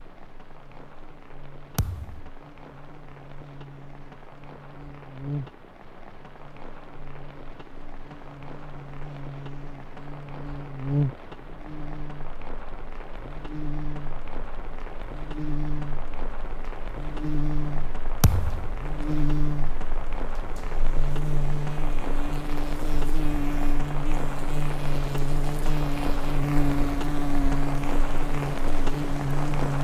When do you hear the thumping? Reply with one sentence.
You can hear the thumping from 1.8 to 2.3 s and from 18.2 to 18.8 s.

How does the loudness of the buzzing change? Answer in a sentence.
The volume of the buzzing goes up.